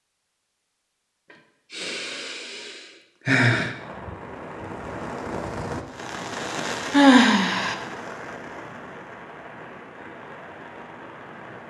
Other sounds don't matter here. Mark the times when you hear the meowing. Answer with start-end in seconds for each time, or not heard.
not heard.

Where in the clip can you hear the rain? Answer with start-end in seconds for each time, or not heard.
3.7-11.6.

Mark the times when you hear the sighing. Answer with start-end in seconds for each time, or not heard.
1.7-3.7, 6.9-7.8.